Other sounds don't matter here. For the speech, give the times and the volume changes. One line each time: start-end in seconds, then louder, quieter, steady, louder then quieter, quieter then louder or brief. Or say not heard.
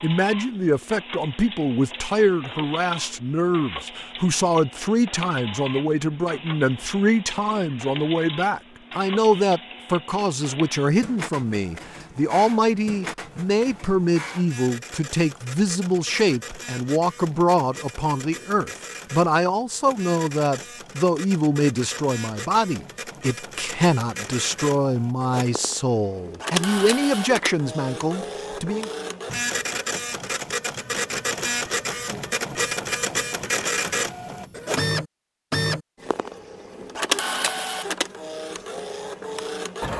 0.0-28.9 steady.